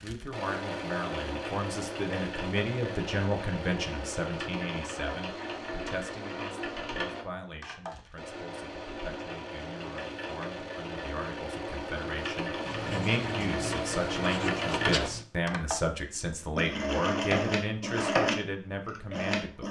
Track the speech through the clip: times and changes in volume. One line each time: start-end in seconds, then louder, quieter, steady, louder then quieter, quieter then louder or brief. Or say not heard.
0.0-19.6 quieter then louder.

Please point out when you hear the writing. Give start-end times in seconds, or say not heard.
12.7-15.2.